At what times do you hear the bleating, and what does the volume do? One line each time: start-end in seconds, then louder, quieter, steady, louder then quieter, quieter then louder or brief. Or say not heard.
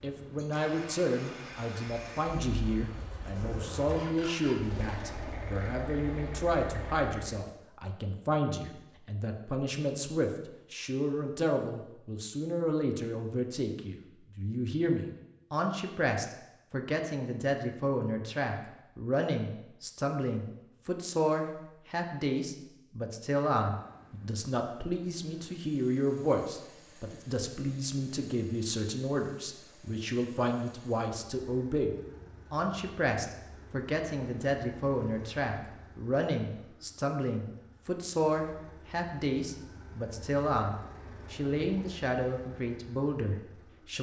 not heard.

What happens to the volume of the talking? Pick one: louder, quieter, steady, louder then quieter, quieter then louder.
steady.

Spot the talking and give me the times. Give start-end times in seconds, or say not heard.
0.0-43.9.